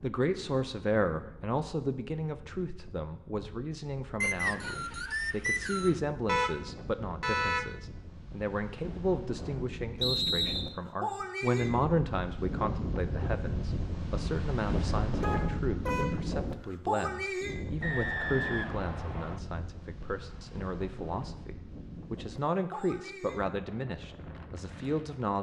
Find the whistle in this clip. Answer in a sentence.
The whistle can be heard from 4.2 to 6.0 s, from 10.0 to 10.8 s and from 17.8 to 19.4 s.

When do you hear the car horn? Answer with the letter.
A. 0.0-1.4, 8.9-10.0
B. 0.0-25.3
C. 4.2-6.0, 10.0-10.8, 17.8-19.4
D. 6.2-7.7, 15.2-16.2
D.